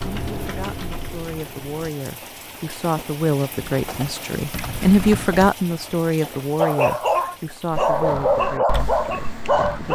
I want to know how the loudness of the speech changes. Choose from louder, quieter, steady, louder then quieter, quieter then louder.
louder then quieter.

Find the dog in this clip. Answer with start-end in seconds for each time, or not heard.
6.5-9.9.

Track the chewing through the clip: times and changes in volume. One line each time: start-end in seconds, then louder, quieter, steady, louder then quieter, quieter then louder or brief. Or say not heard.
not heard.